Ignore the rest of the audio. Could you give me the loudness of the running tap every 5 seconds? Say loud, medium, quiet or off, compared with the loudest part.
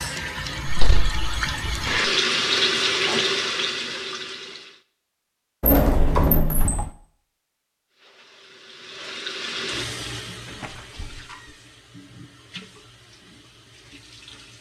loud, medium, quiet.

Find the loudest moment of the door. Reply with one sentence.
The loudest moment of the door is at 6 seconds.